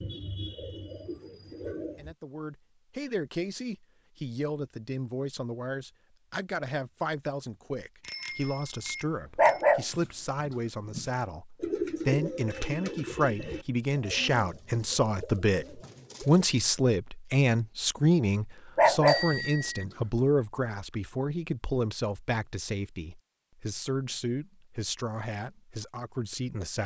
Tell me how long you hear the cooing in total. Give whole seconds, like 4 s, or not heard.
7 s.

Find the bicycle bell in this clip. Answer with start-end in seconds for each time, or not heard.
8.0-9.7, 19.1-19.9.